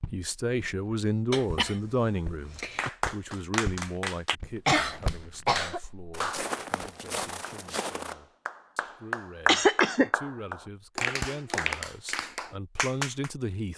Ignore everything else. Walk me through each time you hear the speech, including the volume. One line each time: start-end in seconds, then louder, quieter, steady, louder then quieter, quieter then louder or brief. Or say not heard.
0.0-13.7 quieter then louder.